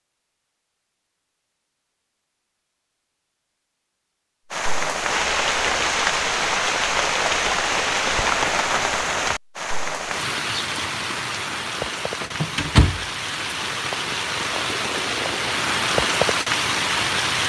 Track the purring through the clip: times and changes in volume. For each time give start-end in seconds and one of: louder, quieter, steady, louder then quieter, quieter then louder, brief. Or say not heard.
not heard.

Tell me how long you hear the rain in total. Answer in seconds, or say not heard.
13 s.